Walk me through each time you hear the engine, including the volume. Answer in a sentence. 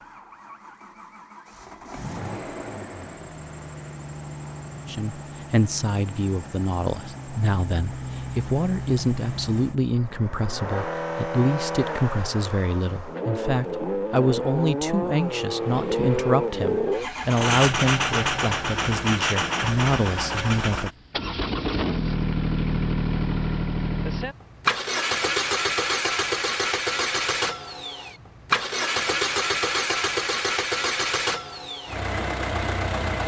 You can hear the engine from 0.0 to 33.2 s, getting louder.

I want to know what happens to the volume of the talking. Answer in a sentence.
The loudness of the talking stays about the same.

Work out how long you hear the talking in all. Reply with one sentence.
You can hear the talking for 16 seconds altogether.